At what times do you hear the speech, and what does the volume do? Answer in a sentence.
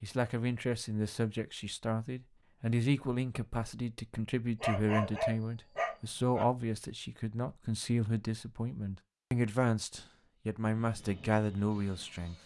You can hear the speech from 0.0 to 12.3 s, at a steady volume.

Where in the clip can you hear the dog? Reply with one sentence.
You can hear the dog from 4.6 to 6.5 s.